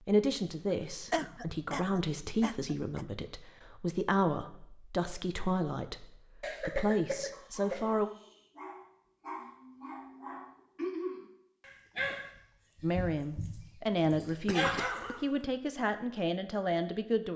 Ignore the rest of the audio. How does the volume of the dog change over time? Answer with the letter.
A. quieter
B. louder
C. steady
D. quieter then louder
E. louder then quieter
B.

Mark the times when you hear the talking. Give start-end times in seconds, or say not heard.
0.1-8.1, 12.8-17.3.